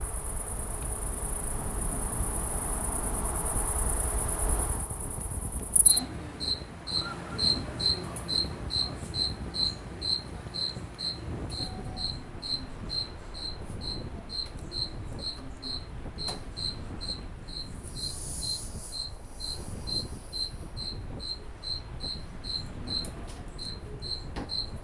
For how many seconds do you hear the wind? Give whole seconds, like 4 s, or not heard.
25 s.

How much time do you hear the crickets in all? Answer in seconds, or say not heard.
25 s.